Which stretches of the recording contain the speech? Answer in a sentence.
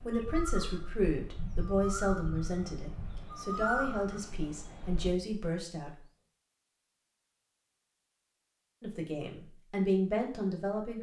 The speech can be heard from 0.0 to 5.9 s and from 8.8 to 10.9 s.